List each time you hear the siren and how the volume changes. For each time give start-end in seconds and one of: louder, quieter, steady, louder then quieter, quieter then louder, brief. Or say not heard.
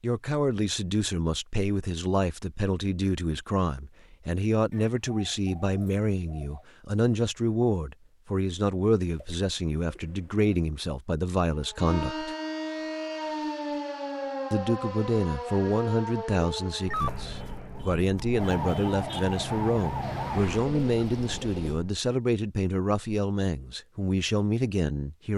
11.5-21.9 steady.